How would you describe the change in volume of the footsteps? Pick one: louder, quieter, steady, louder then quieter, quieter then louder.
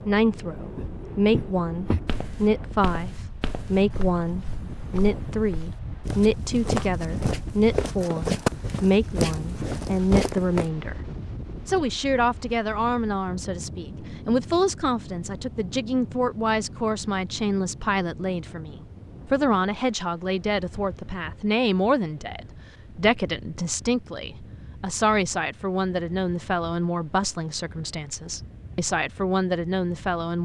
quieter then louder.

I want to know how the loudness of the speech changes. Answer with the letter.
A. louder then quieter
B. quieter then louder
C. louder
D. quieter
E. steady
E.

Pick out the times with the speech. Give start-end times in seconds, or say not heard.
0.1-10.9, 11.7-30.3.